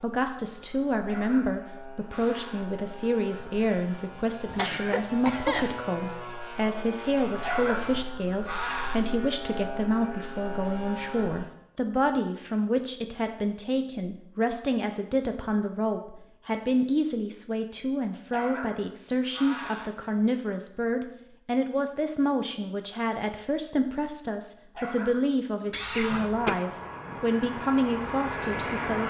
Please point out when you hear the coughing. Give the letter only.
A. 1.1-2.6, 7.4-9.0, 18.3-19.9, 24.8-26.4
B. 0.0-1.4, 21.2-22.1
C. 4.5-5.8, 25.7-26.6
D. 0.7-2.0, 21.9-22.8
C.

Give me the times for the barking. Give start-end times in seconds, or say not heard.
1.1-2.6, 7.4-9.0, 18.3-19.9, 24.8-26.4.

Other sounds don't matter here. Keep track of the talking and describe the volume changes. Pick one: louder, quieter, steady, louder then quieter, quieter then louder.
steady.